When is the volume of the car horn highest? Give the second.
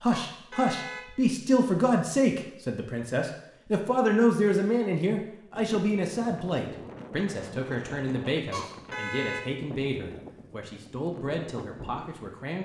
9 s.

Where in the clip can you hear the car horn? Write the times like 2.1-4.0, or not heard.
0.1-1.1, 8.5-9.4.